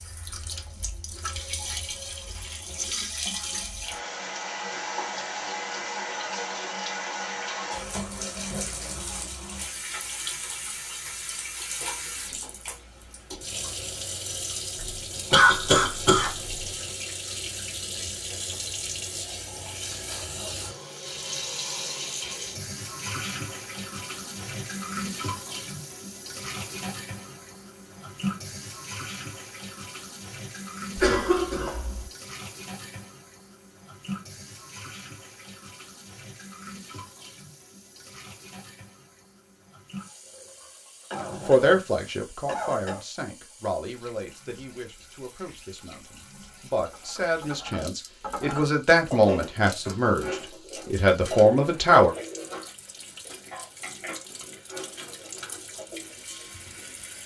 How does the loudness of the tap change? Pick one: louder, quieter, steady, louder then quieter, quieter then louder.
quieter.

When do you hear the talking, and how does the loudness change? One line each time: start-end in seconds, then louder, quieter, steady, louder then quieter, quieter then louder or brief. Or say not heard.
41.5-52.1 quieter then louder.